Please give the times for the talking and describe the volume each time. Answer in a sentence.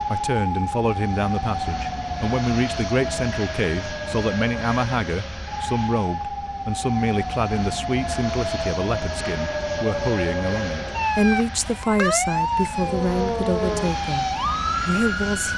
You can hear the talking from 0.1 to 15.5 s, at a steady volume.